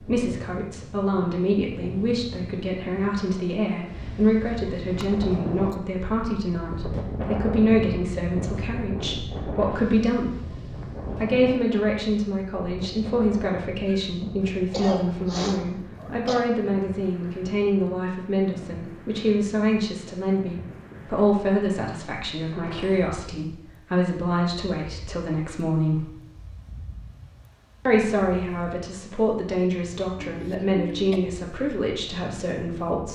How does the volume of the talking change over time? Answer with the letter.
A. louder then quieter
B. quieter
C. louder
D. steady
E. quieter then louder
D.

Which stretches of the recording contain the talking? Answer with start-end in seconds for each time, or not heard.
0.0-10.3, 11.2-26.1, 27.9-33.1.